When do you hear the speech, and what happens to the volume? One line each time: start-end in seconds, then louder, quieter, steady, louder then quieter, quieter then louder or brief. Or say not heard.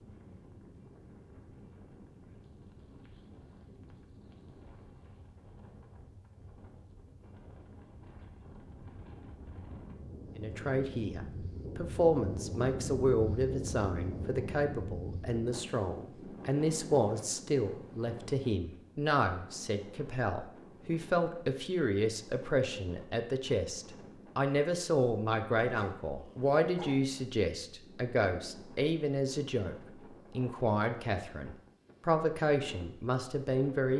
10.3-33.9 steady.